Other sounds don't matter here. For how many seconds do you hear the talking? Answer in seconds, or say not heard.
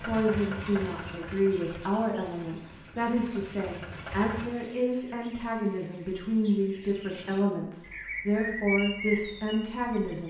10 s.